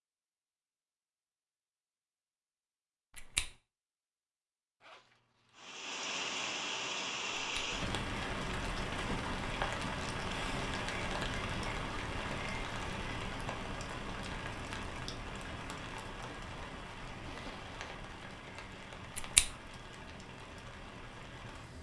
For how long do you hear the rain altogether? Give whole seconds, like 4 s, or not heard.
16 s.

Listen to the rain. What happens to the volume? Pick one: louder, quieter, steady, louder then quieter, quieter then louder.
quieter.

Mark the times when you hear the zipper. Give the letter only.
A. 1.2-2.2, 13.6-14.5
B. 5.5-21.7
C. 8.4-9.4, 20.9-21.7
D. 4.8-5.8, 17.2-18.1
D.